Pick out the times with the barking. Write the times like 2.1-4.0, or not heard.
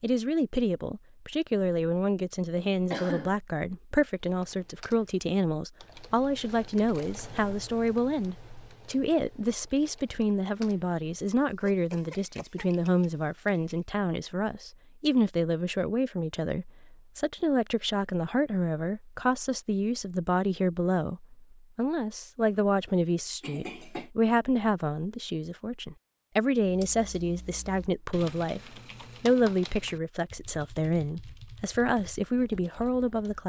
not heard.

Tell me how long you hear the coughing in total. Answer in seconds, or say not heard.
2 s.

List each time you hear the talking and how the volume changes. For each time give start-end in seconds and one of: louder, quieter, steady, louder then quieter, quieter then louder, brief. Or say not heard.
0.0-33.4 steady.